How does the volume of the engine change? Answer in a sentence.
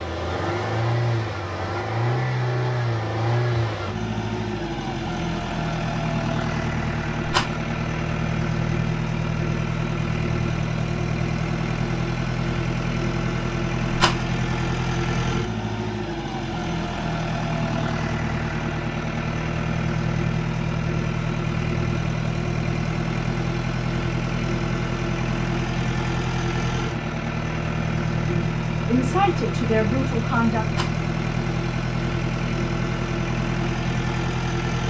The loudness of the engine stays about the same.